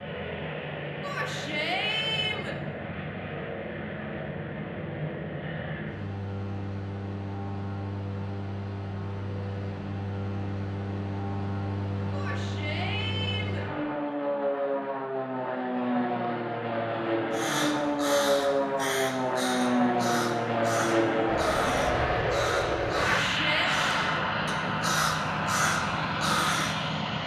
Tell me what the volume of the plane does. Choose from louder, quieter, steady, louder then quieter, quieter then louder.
louder.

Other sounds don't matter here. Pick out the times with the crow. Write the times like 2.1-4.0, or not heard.
17.3-26.8.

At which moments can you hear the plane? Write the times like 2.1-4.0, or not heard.
0.0-27.2.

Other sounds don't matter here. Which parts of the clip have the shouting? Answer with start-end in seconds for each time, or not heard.
1.0-2.5, 12.1-13.7, 22.9-23.7.